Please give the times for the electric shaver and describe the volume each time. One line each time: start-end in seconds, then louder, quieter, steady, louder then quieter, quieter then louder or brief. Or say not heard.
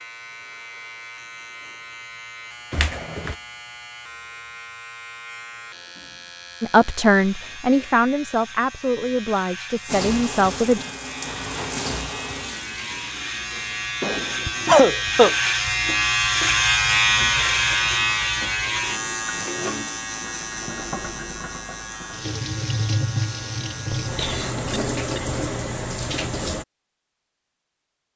0.0-24.4 louder then quieter.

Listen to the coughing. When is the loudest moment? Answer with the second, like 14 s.
15 s.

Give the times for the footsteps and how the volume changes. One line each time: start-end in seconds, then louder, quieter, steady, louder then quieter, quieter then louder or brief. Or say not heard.
not heard.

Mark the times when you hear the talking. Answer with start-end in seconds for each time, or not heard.
6.6-10.8.